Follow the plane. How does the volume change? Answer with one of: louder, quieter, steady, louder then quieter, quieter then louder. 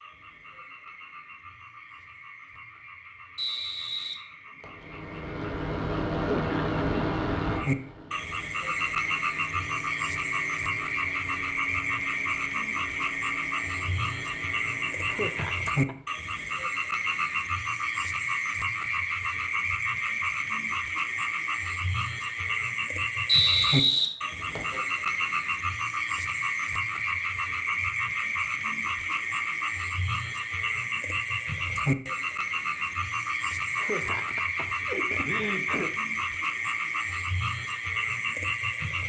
quieter.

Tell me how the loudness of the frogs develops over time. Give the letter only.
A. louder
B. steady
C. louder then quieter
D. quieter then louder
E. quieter
A.